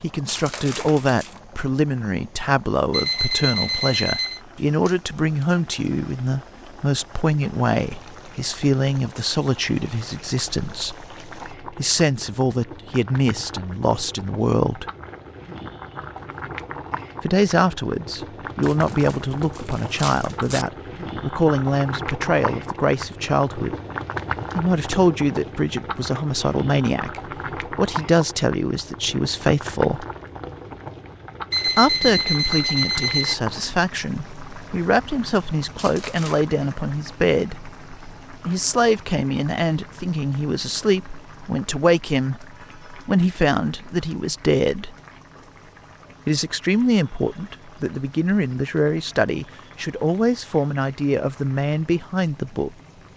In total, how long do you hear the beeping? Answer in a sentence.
The beeping can be heard for 3 seconds in total.